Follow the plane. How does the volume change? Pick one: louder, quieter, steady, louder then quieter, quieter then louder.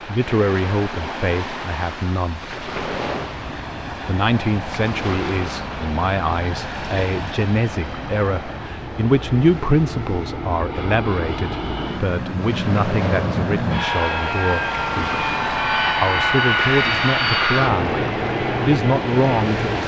louder.